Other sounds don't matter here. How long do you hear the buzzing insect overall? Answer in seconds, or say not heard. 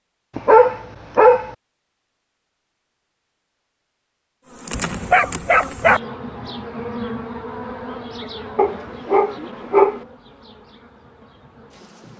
8 s.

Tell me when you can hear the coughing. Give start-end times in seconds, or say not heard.
not heard.